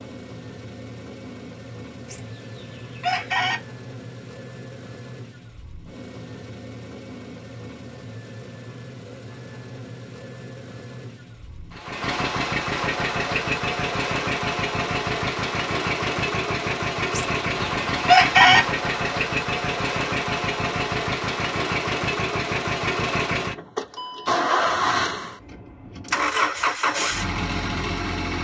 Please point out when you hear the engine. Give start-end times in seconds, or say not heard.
0.0-28.3.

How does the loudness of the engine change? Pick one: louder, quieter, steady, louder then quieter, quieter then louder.
louder.